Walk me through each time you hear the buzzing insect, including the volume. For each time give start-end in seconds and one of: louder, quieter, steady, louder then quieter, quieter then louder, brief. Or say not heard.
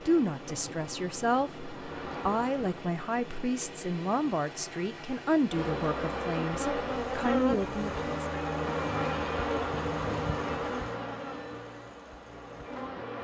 0.0-2.9 brief
5.5-13.1 quieter.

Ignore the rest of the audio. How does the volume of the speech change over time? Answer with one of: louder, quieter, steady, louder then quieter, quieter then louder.
steady.